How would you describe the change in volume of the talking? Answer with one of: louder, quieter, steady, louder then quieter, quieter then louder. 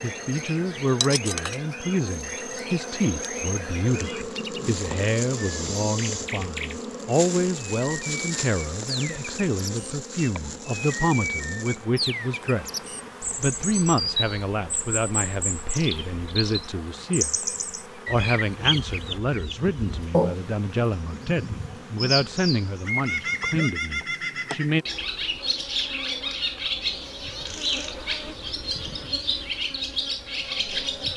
steady.